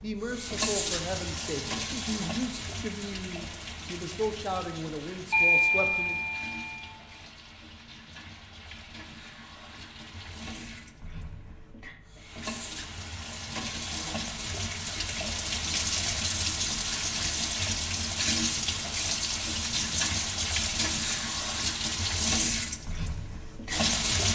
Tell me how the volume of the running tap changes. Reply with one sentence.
The loudness of the running tap goes down, then up.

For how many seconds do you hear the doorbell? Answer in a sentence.
The doorbell can be heard for 2 seconds in total.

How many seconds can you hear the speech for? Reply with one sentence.
You can hear the speech for 6 seconds altogether.